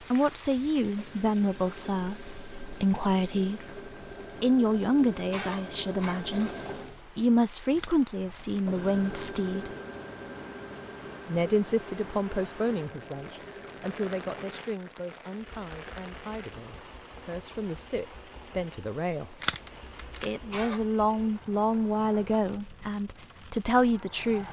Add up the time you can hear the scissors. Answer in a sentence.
You can hear the scissors for 2 seconds altogether.